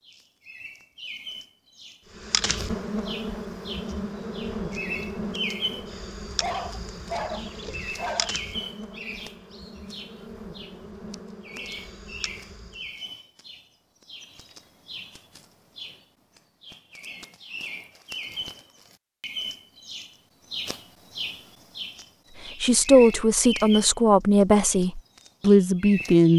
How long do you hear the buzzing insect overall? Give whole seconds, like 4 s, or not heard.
11 s.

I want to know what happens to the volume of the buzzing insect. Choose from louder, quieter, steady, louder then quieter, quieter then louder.
quieter.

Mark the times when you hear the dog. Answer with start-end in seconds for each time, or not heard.
6.3-8.3.